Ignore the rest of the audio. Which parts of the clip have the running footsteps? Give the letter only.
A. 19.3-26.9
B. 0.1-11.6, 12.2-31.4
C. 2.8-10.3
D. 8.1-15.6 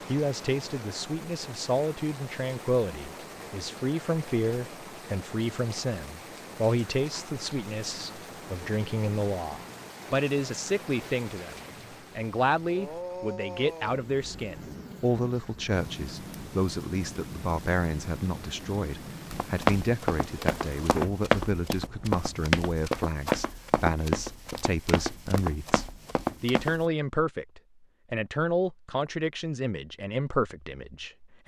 A.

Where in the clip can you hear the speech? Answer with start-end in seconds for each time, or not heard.
0.1-11.6, 12.2-31.4.